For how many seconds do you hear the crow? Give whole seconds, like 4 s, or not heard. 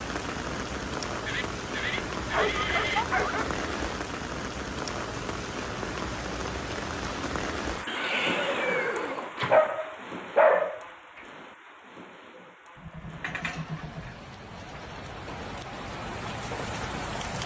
not heard.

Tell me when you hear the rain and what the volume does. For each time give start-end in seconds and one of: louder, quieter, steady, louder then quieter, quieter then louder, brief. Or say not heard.
0.0-17.4 quieter then louder.